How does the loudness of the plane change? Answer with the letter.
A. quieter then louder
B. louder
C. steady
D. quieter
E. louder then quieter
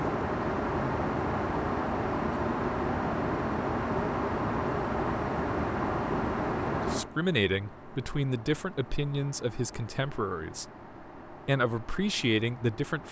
D.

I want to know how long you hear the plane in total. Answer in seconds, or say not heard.
13 s.